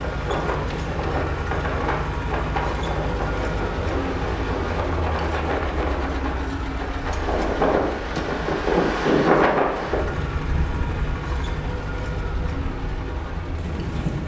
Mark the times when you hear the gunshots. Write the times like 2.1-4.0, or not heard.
not heard.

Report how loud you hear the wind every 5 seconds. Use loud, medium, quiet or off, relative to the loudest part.
medium, loud, medium.